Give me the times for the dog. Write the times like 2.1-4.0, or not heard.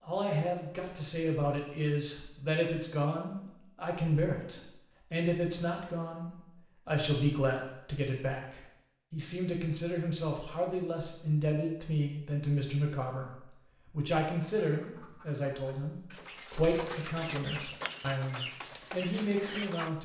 not heard.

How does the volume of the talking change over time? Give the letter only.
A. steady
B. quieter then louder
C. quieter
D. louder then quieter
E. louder
A.